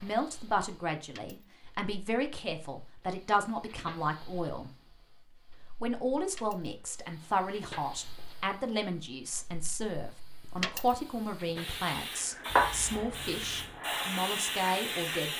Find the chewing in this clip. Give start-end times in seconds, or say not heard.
not heard.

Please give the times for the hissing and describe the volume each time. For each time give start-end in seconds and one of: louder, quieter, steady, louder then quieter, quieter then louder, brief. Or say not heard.
0.0-15.3 louder.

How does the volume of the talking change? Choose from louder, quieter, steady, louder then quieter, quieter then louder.
steady.